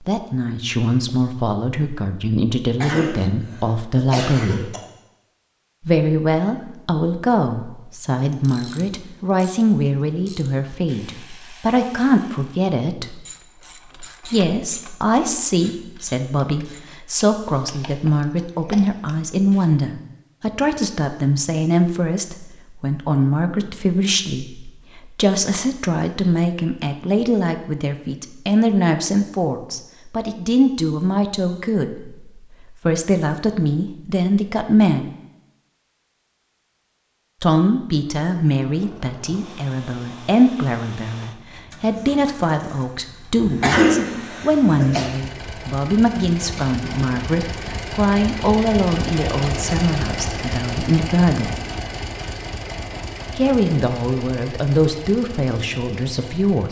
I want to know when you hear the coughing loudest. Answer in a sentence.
The volume of the coughing peaks at 44 seconds.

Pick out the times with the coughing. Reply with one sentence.
The coughing can be heard from 2.8 to 4.8 s and from 43.6 to 45.0 s.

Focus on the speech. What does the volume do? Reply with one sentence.
The volume of the speech stays about the same.